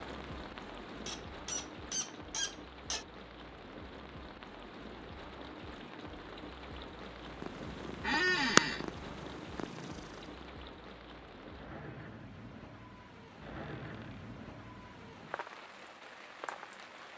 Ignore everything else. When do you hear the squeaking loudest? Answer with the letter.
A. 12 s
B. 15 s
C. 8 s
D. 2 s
C.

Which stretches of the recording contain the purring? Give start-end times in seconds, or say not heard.
7.2-10.5.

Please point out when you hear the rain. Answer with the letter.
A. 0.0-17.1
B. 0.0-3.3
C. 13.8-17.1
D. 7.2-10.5
A.